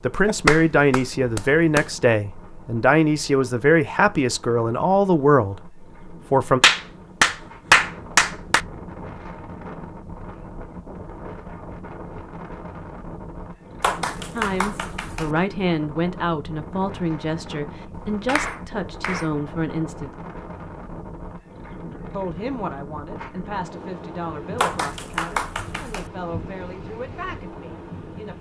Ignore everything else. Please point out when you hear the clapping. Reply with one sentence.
You can hear the clapping from 0.2 to 1.9 s, from 6.6 to 8.6 s, from 13.8 to 15.3 s, from 18.2 to 19.2 s and from 24.6 to 26.1 s.